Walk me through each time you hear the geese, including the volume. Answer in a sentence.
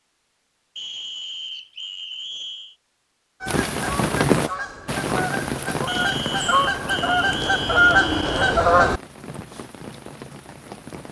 The geese can be heard from 3.4 to 9.4 s, getting louder.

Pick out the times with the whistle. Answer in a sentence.
You can hear the whistle from 0.8 to 2.8 s and from 5.8 to 8.4 s.